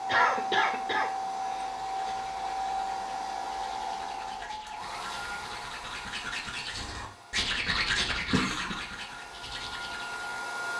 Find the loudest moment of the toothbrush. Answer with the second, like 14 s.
8 s.